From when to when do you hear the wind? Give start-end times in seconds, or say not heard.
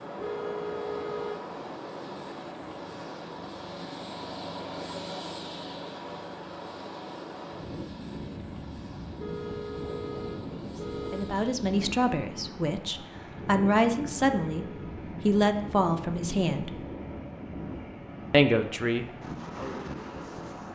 0.0-20.7.